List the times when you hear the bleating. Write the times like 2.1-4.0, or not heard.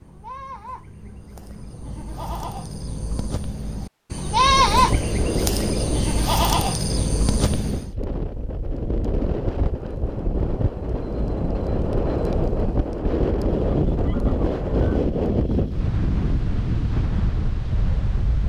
0.0-8.0.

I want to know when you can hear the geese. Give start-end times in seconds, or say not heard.
13.5-15.0.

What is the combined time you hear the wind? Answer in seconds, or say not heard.
14 s.